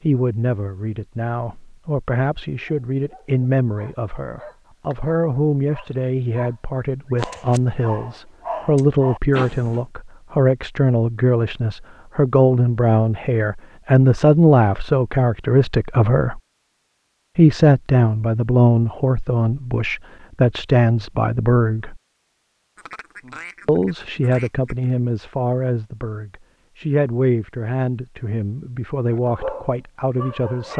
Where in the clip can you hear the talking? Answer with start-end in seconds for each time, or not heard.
0.0-16.4, 17.4-22.0, 23.6-30.7.